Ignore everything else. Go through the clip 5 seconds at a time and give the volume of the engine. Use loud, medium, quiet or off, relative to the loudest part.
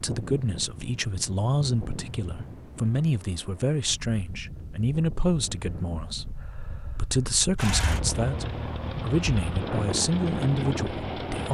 off, loud, loud.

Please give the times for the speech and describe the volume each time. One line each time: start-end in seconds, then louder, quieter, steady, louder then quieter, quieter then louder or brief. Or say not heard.
0.0-11.5 steady.